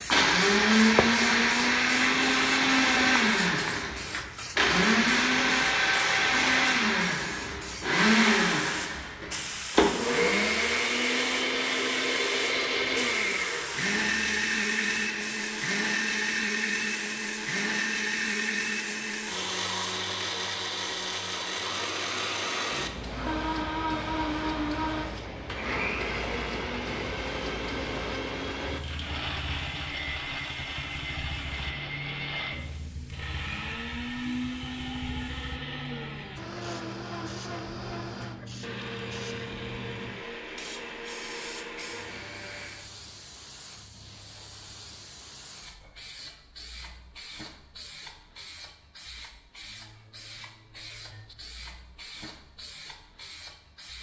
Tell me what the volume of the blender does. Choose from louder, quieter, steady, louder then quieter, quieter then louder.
quieter.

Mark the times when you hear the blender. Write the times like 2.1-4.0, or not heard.
0.1-42.9.